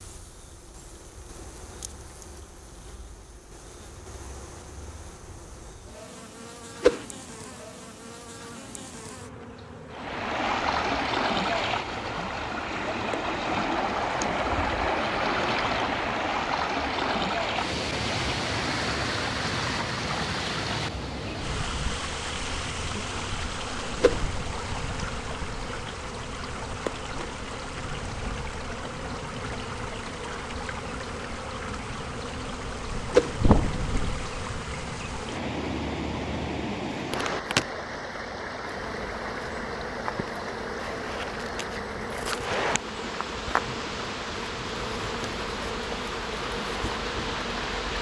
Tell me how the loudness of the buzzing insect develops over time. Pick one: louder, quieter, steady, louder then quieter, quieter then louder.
louder.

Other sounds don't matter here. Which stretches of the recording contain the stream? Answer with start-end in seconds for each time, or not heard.
9.9-47.9.